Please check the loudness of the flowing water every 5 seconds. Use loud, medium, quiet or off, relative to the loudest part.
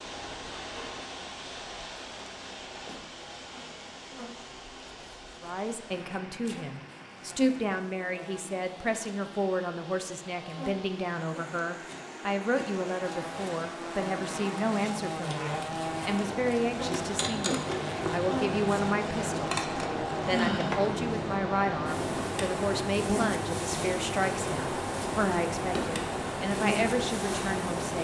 medium, quiet, medium, loud, loud, loud.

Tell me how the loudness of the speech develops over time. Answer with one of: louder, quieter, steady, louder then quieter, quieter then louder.
steady.